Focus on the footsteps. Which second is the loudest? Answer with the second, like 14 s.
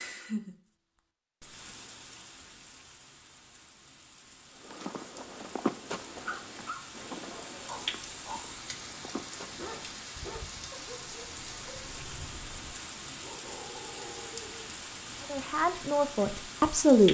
6 s.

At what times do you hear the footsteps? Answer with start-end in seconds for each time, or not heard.
4.5-10.0.